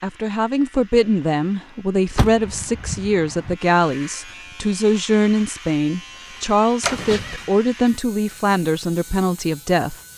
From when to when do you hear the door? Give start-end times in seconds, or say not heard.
2.1-3.5, 6.8-7.5.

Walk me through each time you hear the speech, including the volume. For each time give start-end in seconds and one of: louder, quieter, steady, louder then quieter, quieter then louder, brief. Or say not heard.
0.0-9.9 steady.